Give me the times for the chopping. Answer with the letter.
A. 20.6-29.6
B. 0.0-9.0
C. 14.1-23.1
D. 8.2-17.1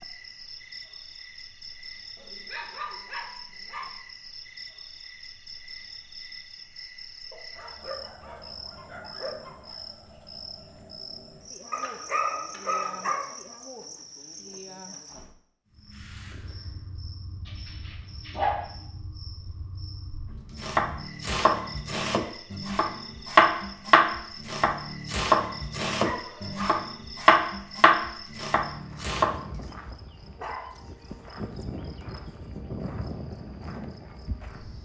A.